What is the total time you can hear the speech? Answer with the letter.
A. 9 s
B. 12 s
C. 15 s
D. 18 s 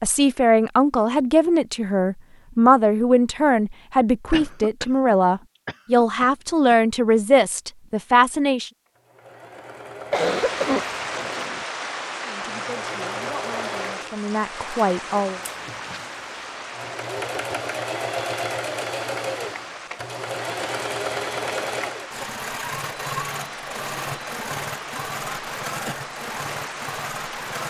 B.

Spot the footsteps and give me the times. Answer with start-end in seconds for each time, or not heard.
not heard.